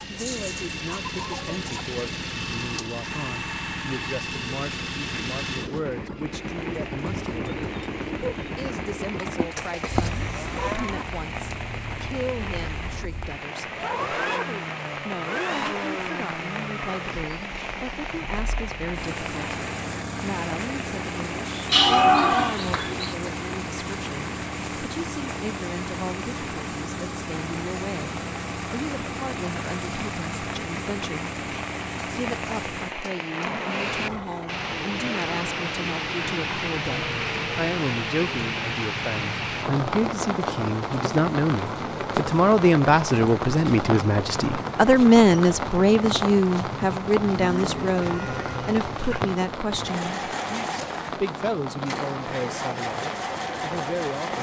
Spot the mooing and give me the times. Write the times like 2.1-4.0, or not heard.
9.2-11.1, 21.6-23.1, 47.4-49.3.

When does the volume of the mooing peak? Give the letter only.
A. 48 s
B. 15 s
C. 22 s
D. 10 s
C.